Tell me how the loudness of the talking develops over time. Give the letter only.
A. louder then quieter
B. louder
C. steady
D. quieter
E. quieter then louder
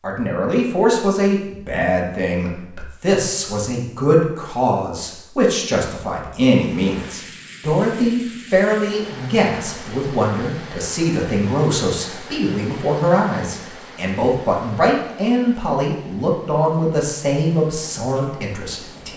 C.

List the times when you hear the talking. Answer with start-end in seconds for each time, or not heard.
0.0-19.1.